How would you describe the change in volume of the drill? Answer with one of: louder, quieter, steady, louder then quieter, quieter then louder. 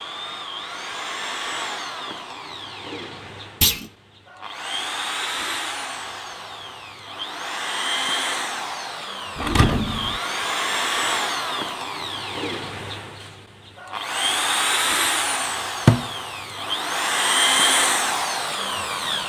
louder.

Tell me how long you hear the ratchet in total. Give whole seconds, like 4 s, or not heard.
not heard.